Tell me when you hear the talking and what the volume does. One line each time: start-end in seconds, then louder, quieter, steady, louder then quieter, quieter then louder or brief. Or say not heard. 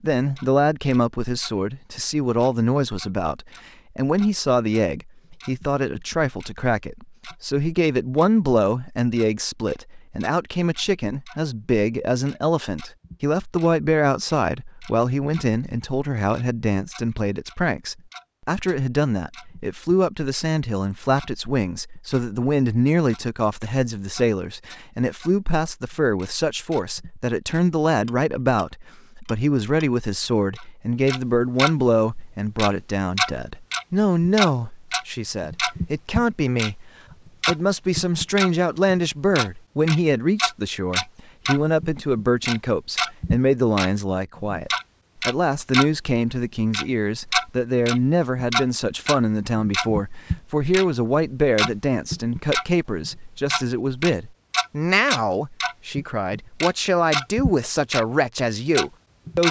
0.0-59.4 steady.